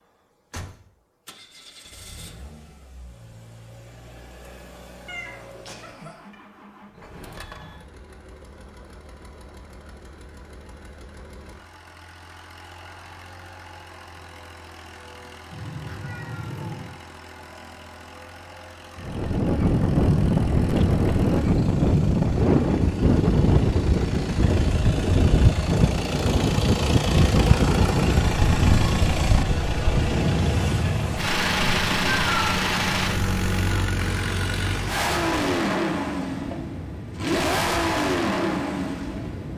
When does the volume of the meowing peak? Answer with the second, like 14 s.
32 s.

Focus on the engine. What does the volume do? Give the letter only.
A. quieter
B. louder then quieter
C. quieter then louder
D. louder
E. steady
D.